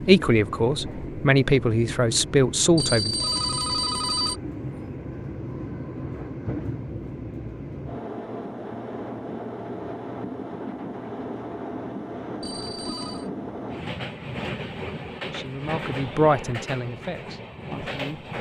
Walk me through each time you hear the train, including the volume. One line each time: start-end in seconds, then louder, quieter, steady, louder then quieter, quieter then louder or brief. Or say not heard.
0.0-18.3 steady.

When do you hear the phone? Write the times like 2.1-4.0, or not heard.
2.8-4.4, 12.4-13.3.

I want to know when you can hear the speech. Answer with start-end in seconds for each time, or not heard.
0.0-3.1, 15.2-18.2.